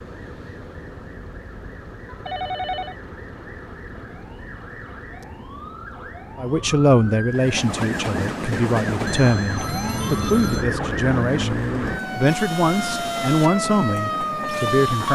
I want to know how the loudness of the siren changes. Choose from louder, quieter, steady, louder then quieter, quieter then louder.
louder.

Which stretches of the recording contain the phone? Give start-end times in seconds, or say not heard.
2.2-3.0, 9.1-10.7.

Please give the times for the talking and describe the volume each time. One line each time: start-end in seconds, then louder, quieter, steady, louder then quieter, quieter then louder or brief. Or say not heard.
6.3-15.1 steady.